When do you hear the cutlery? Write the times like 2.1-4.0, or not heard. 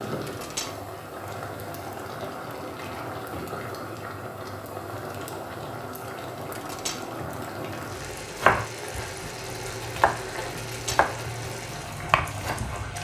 0.2-0.8, 6.5-7.0, 10.6-11.1.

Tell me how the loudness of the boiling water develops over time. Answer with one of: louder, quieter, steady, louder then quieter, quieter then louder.
steady.